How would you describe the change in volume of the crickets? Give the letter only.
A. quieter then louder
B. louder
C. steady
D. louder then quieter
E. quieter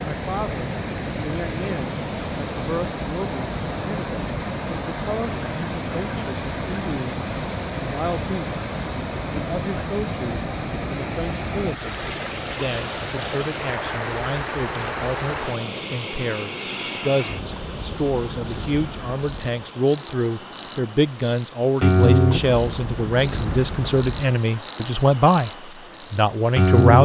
B.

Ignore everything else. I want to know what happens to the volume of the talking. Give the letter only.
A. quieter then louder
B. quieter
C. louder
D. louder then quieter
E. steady
C.